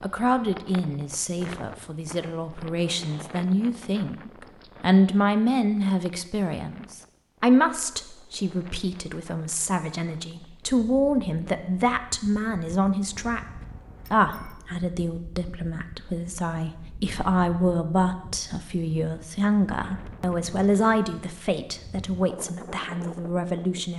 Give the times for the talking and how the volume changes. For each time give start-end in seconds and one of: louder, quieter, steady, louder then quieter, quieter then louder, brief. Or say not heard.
0.0-23.9 steady.